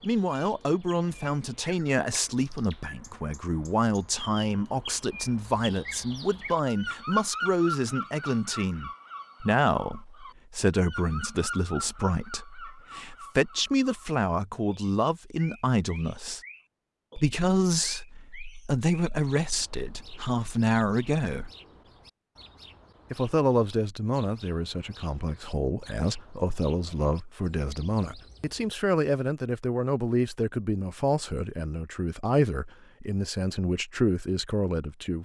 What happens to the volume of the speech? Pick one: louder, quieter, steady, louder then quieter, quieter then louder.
steady.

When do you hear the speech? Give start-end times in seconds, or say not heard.
0.0-16.4, 17.1-21.5, 23.1-35.2.